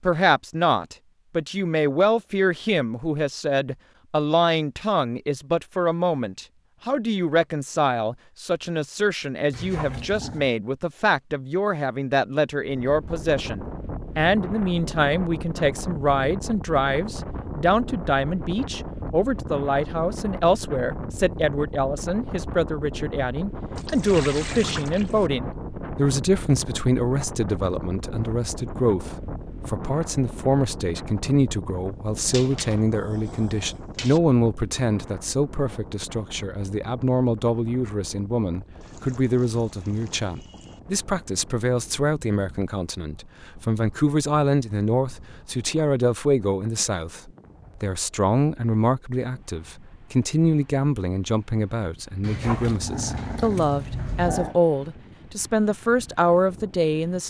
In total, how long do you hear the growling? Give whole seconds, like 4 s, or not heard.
5 s.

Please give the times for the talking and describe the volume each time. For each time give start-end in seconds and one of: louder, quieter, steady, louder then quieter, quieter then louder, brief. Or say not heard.
0.0-57.2 steady.